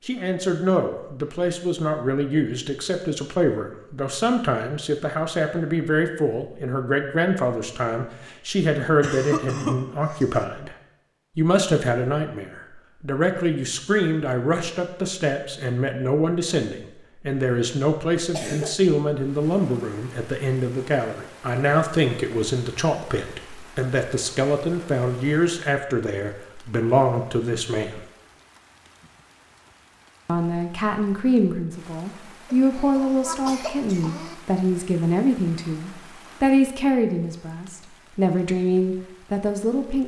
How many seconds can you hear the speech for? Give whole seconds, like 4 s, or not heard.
37 s.